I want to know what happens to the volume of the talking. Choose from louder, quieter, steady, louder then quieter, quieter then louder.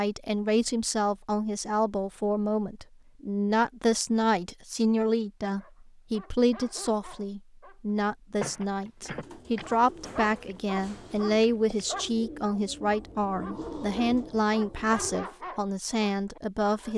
steady.